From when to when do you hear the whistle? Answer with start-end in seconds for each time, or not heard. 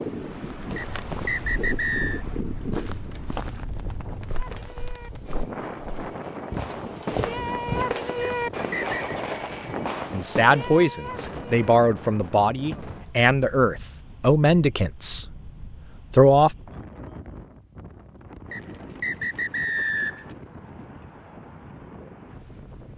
0.8-2.2, 8.2-8.9, 18.5-20.3.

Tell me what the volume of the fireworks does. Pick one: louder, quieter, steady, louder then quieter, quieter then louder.
louder then quieter.